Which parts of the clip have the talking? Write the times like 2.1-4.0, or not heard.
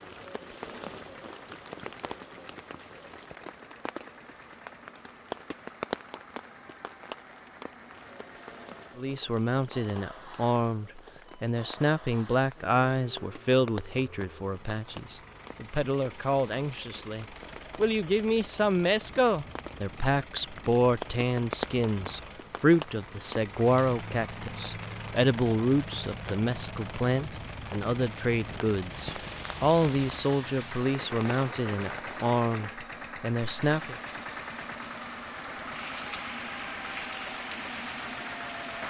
8.9-34.0.